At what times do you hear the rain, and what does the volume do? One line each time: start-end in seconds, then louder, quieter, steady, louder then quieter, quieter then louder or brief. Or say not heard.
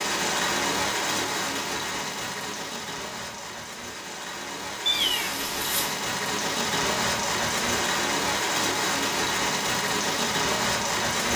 0.0-11.3 quieter then louder.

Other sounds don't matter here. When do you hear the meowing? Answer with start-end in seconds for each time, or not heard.
4.8-6.0.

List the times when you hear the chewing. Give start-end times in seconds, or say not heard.
not heard.